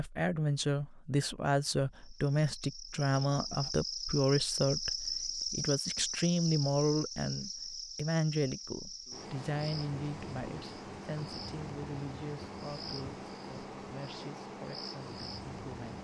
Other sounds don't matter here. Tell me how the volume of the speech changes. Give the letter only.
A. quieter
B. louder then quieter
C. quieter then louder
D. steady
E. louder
A.